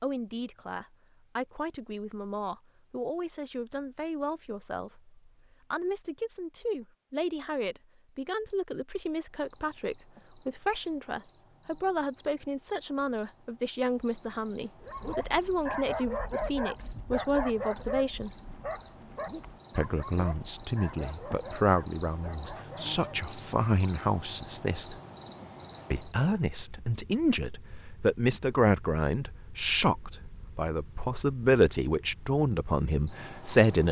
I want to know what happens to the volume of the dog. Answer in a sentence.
The loudness of the dog goes down.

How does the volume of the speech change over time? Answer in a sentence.
The volume of the speech goes up.